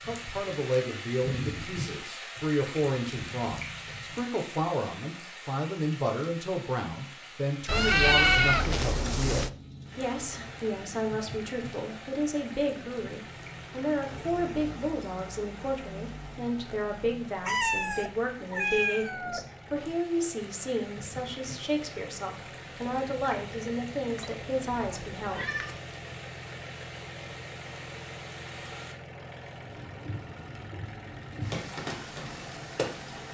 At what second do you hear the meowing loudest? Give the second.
8 s.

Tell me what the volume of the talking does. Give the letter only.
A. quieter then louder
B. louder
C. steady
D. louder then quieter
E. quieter
C.